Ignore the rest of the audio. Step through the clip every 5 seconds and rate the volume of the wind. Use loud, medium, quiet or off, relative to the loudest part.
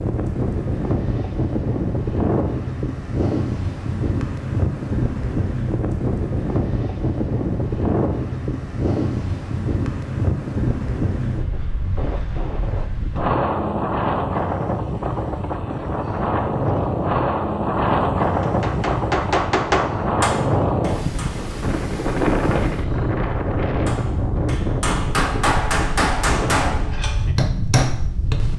loud, loud, loud, loud, loud, medium.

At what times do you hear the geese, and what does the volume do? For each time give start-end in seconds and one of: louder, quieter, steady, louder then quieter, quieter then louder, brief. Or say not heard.
not heard.